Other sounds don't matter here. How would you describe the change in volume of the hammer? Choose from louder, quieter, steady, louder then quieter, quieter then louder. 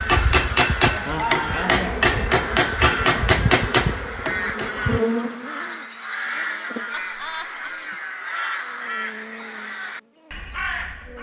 steady.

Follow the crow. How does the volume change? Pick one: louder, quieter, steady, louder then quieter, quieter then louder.
steady.